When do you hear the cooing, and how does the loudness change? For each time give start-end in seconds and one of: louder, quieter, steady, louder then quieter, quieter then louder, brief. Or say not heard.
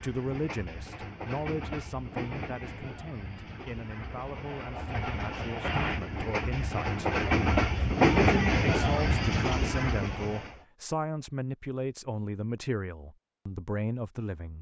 not heard.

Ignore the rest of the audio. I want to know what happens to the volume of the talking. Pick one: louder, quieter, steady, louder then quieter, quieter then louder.
quieter then louder.